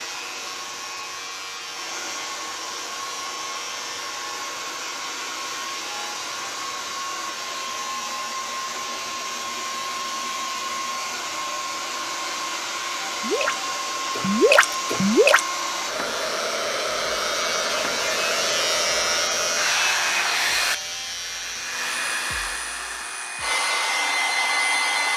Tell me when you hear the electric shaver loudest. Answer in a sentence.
The loudest moment of the electric shaver is at 19 seconds.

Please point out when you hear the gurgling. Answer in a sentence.
The gurgling can be heard from 13.2 to 15.4 s.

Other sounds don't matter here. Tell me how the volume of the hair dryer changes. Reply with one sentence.
The volume of the hair dryer goes up.